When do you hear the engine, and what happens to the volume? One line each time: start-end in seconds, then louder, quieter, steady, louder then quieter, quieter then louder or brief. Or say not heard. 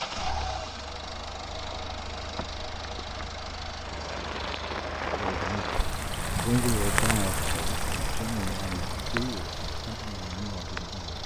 0.0-11.2 steady.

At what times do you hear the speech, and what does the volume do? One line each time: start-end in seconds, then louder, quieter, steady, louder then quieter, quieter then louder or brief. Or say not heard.
5.0-11.2 louder then quieter.